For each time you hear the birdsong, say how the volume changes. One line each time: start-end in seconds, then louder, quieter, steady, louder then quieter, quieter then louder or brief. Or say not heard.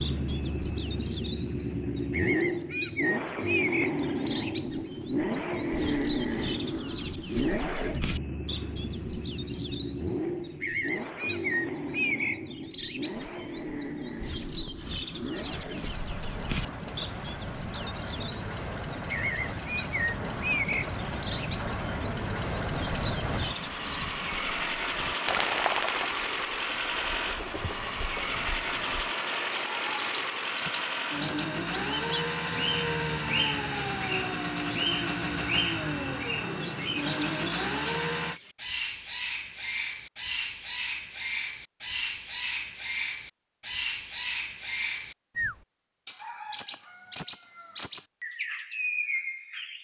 0.0-49.7 steady.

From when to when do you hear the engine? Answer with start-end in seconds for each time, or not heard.
0.0-38.4.